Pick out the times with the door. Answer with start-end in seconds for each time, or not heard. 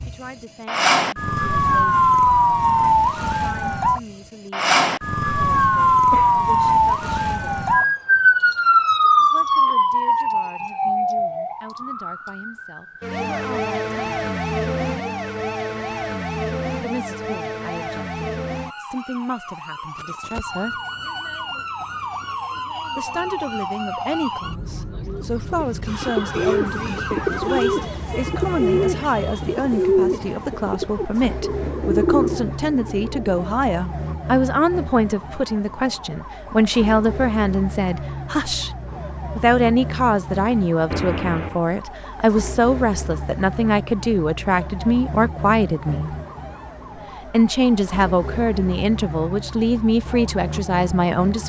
not heard.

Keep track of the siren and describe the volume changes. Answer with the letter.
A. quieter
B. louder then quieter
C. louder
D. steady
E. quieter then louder
A.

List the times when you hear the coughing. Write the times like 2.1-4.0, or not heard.
6.1-6.5, 40.9-41.6.